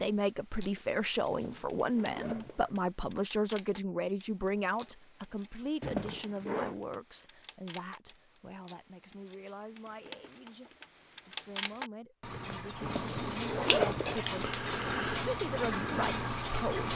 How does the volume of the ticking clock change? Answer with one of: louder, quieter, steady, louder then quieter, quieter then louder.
louder.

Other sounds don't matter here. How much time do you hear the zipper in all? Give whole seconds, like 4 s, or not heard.
4 s.